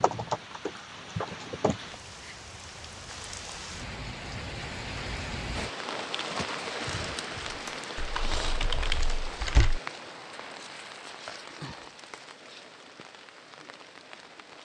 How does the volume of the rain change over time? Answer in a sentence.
The loudness of the rain goes up, then down.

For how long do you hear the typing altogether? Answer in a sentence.
You can hear the typing for 4 seconds altogether.